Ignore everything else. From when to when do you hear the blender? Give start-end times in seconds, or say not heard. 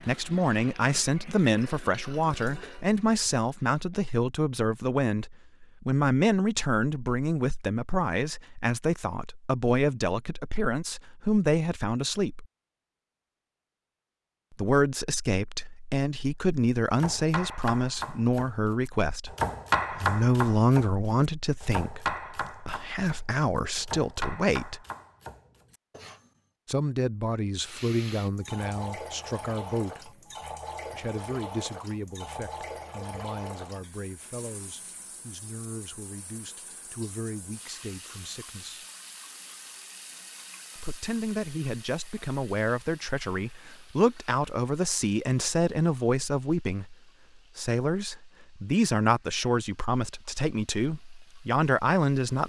not heard.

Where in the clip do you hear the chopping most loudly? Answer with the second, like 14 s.
20 s.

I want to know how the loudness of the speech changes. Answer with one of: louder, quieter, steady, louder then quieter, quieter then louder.
quieter then louder.